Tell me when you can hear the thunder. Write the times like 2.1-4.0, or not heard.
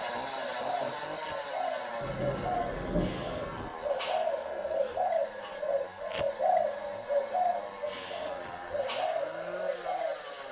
2.0-3.7.